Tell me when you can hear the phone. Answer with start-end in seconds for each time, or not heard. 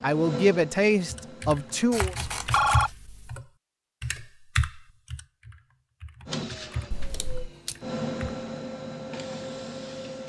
2.2-2.9, 6.9-7.5.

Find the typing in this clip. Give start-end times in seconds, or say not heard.
1.1-8.4.